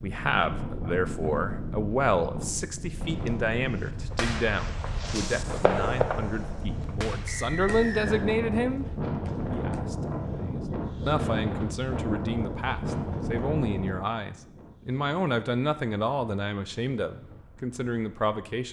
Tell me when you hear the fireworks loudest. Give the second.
6 s.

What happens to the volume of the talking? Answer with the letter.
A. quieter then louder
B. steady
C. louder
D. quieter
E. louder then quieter
B.